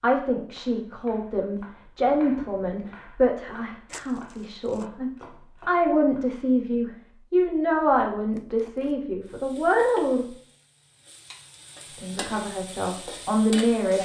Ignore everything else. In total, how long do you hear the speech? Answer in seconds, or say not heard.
12 s.